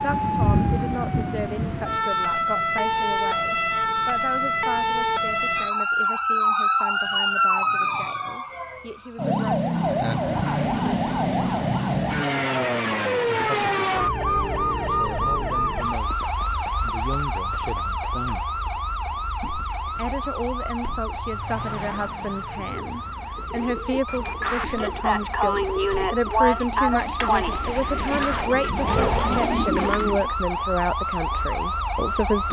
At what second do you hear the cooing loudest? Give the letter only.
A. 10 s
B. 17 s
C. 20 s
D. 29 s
D.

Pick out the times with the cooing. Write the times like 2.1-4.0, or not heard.
22.3-30.3.